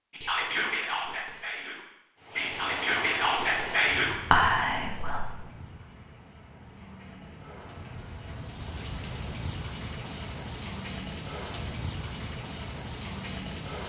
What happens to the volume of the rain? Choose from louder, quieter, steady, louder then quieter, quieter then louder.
quieter then louder.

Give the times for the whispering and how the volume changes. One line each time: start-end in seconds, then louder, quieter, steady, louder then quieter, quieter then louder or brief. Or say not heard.
0.1-5.3 quieter then louder.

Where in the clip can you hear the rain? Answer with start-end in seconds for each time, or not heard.
2.2-13.8.